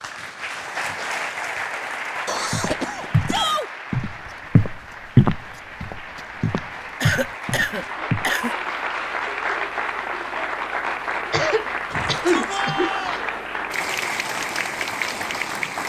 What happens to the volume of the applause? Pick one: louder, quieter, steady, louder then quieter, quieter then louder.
quieter then louder.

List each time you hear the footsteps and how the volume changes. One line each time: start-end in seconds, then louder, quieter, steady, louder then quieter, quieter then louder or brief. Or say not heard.
2.5-8.3 louder then quieter.